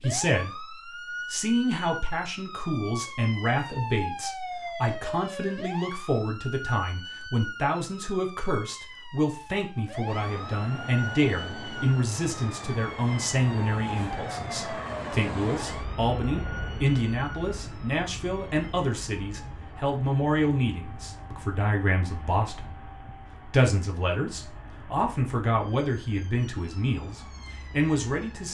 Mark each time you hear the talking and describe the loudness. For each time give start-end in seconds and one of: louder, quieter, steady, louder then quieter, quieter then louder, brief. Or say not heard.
0.0-28.4 steady.